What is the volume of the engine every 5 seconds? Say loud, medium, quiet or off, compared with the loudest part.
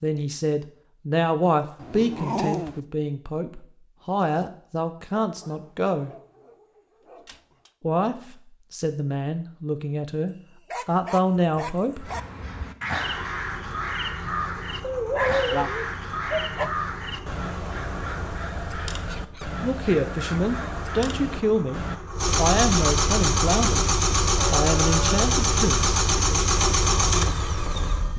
off, off, quiet, quiet, loud, loud.